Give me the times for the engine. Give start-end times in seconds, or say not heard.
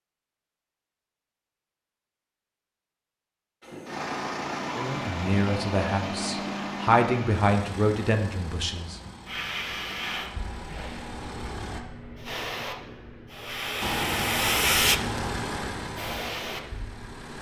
3.6-11.8, 13.8-17.3.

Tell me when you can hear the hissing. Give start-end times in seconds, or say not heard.
9.2-17.3.